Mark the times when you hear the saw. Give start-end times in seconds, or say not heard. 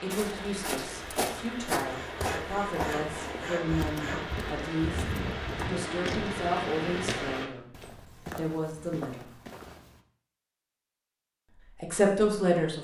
1.8-4.3.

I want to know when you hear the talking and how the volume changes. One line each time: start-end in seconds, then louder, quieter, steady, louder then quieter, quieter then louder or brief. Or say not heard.
0.0-7.7 louder
8.3-9.3 brief
11.8-12.7 brief.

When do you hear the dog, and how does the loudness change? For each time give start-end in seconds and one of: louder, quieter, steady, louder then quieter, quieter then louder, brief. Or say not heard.
not heard.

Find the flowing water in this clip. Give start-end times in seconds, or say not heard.
0.0-7.5.